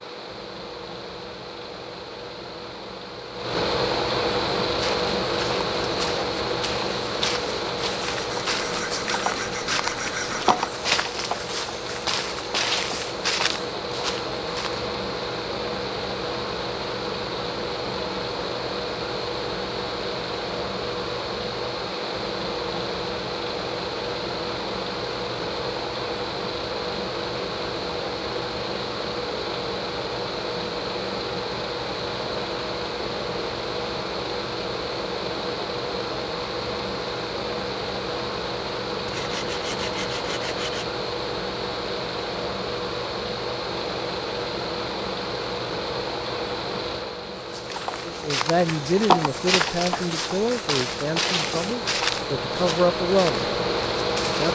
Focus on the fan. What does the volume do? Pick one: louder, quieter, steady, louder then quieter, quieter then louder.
steady.